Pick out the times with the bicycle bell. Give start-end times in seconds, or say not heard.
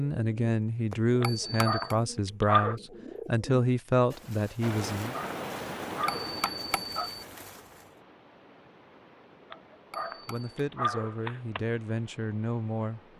1.2-1.9, 6.0-7.2, 9.9-10.5.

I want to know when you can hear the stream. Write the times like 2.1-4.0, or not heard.
4.6-13.1.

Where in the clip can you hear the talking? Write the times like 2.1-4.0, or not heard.
0.0-5.2, 10.2-13.0.